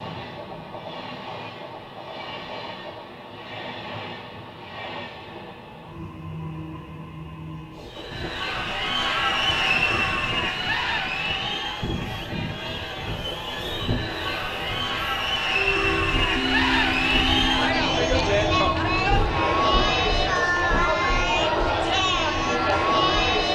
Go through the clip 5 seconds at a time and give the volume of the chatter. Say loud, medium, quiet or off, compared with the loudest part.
off, loud, medium, loud, loud.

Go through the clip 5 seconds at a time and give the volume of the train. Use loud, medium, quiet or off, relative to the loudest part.
medium, medium, medium, loud, medium.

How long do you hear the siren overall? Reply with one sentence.
The siren can't be heard in this clip.